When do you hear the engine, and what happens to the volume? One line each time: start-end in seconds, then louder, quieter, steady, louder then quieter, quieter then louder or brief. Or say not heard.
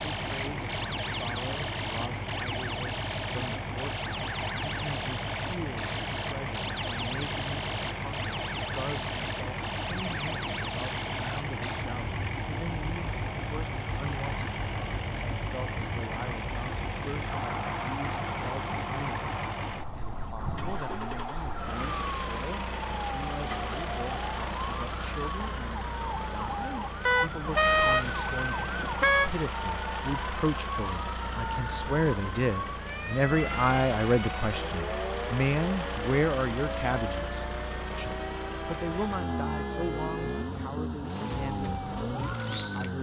0.0-42.9 steady.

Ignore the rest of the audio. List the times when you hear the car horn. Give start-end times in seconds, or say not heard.
27.1-29.4.